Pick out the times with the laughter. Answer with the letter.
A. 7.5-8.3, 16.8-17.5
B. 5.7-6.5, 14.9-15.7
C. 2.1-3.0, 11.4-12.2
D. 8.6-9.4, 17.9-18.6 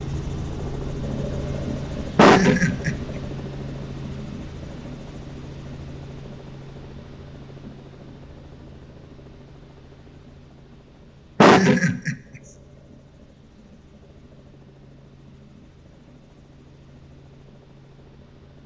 C.